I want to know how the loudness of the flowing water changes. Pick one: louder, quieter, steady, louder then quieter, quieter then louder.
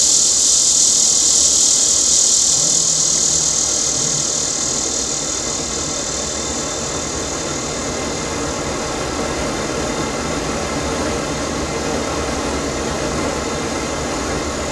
louder.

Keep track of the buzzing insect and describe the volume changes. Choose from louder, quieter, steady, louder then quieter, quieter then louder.
quieter.